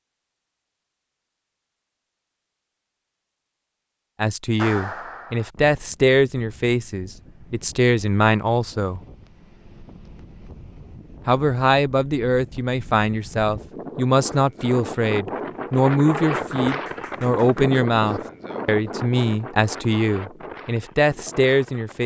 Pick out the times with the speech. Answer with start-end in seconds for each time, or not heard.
4.2-9.0, 11.2-22.0.